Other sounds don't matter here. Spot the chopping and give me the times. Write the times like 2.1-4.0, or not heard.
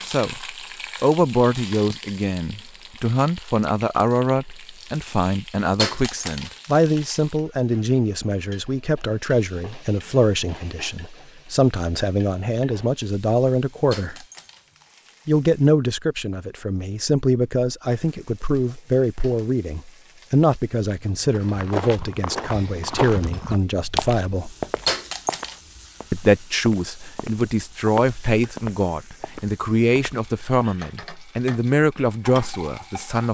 not heard.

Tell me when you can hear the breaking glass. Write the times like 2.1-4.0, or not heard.
5.8-7.0, 13.9-15.2, 24.9-25.6.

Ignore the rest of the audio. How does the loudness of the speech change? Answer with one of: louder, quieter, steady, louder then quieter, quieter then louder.
steady.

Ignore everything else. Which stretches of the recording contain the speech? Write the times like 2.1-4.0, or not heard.
0.1-14.2, 15.2-24.6, 26.1-33.2.